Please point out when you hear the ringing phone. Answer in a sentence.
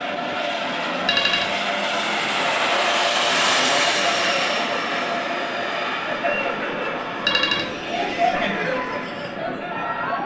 You can hear the ringing phone from 1.1 to 1.6 s and from 7.2 to 7.7 s.